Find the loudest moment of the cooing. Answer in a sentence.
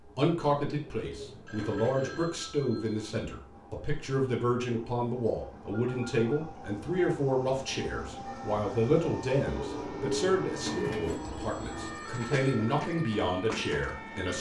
The volume of the cooing peaks at 11 seconds.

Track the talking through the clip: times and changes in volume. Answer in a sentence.
The talking can be heard from 0.1 to 14.3 s, at a steady volume.